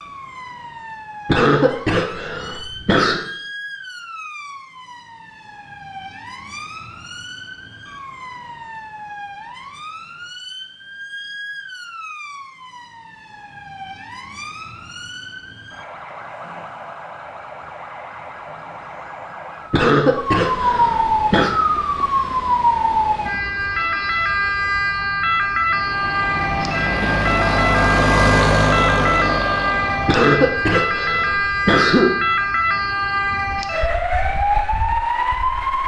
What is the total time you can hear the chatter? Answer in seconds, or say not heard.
not heard.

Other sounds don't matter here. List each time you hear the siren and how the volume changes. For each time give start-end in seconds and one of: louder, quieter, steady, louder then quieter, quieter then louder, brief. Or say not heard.
0.0-35.8 louder.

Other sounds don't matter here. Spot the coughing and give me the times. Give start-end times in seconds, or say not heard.
1.2-3.2, 19.7-21.6, 30.1-32.0.